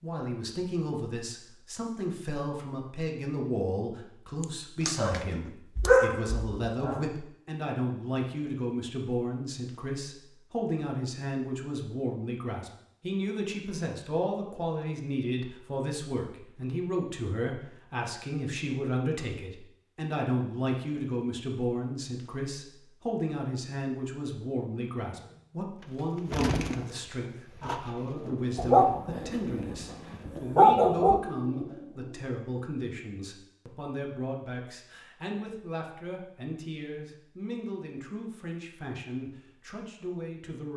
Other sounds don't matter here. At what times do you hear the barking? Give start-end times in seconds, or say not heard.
4.4-7.0, 28.6-31.2.